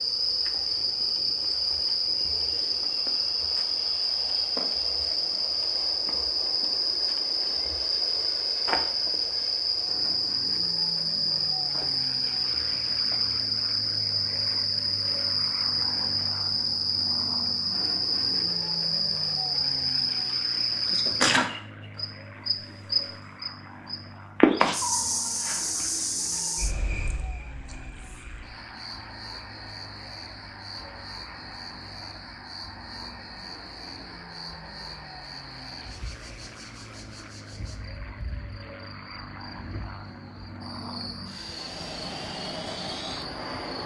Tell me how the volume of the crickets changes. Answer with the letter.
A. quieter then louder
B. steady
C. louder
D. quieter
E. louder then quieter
D.